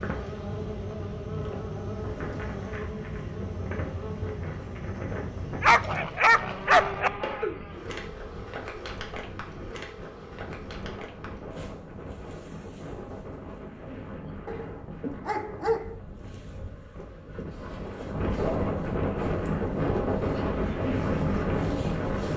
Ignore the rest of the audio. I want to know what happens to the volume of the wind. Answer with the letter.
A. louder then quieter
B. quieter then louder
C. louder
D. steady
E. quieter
C.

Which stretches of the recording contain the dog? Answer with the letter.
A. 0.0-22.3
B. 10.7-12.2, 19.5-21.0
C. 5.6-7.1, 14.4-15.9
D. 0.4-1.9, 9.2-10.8
C.